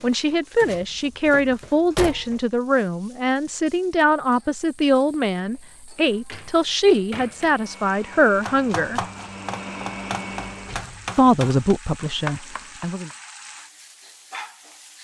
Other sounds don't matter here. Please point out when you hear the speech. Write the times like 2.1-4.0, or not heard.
0.0-9.0, 11.2-13.1.